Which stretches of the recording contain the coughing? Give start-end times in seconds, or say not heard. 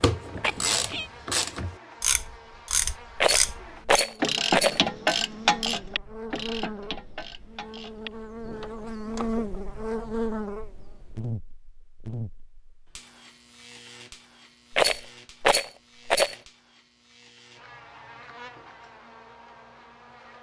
0.4-1.1.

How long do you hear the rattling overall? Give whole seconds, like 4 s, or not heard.
3 s.